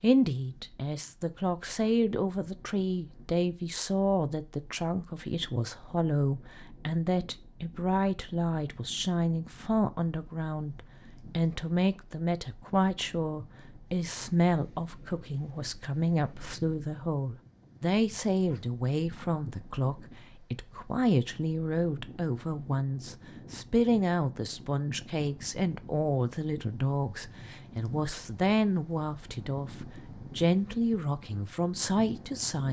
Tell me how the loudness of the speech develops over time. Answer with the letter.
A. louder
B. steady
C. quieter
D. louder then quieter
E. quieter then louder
B.